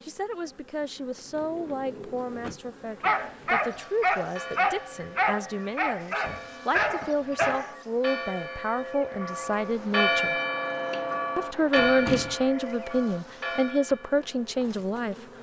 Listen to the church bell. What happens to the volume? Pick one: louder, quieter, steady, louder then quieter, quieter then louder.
louder then quieter.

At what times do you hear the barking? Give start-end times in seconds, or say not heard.
3.0-7.8.